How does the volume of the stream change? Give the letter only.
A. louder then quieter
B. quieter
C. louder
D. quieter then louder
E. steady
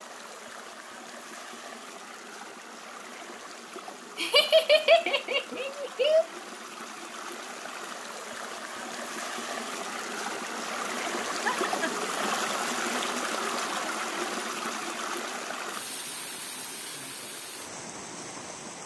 A.